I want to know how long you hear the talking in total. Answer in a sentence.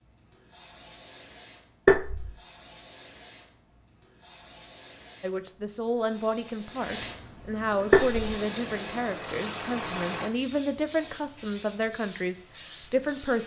You can hear the talking for 8 seconds altogether.